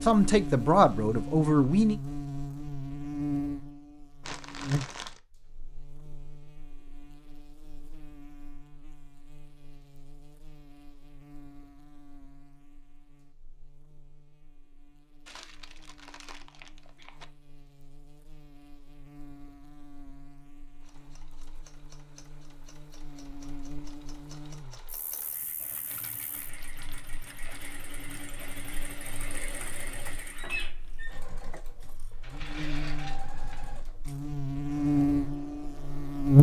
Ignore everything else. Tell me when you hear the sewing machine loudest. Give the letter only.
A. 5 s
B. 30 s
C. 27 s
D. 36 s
B.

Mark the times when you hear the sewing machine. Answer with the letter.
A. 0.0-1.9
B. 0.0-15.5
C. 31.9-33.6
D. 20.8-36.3
D.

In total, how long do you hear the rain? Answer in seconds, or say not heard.
not heard.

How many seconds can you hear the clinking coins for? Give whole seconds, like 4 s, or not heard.
2 s.